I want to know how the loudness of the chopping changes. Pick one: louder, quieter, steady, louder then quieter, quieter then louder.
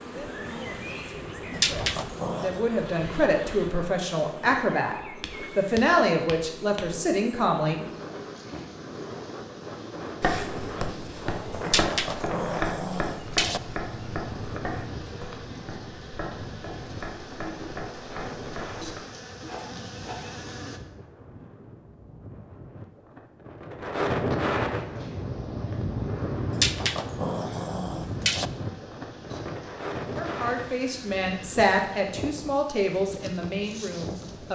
quieter.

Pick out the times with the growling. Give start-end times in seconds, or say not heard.
1.5-2.6, 11.7-13.6, 26.5-28.5.